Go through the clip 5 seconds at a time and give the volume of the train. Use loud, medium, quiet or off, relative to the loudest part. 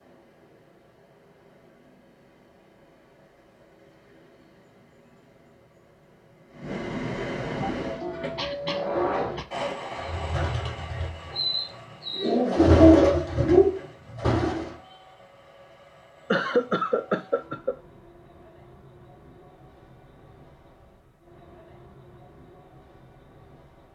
quiet, loud, medium, quiet, quiet.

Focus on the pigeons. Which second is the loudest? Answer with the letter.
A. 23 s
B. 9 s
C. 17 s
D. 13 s
D.